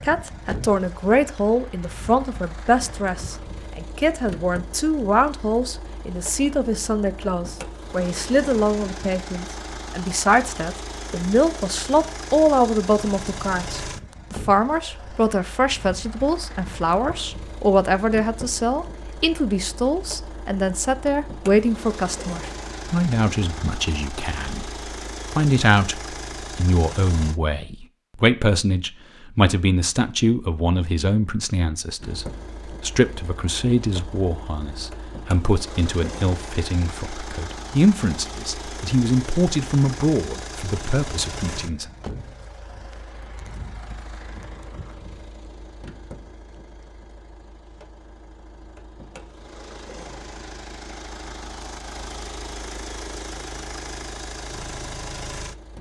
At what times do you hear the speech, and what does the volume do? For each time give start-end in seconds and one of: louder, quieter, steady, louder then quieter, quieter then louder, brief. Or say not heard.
0.0-41.9 steady.